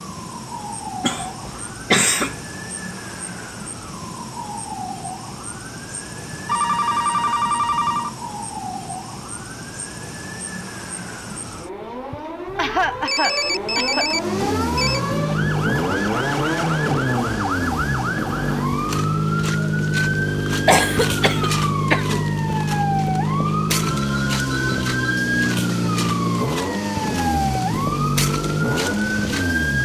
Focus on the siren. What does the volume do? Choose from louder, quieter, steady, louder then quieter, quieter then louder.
louder.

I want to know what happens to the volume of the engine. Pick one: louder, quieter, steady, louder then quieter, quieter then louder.
steady.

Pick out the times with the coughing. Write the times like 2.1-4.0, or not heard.
1.0-2.4, 12.1-14.1, 20.6-22.2.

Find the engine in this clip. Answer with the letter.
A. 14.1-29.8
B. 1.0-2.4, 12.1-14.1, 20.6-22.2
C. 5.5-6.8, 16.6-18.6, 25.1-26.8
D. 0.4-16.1
A.